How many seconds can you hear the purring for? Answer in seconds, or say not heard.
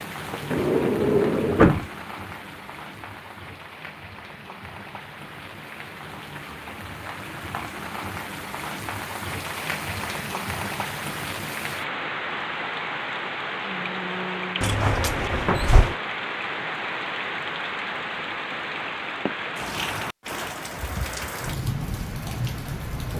not heard.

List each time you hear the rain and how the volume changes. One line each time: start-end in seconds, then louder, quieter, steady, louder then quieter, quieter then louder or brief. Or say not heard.
0.0-23.1 louder.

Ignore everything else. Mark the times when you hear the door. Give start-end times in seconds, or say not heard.
0.3-1.9, 14.6-15.9.